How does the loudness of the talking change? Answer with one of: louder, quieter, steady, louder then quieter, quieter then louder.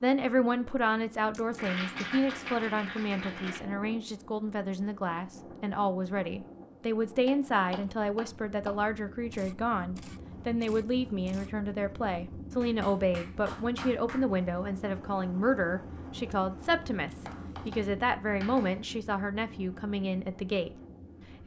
steady.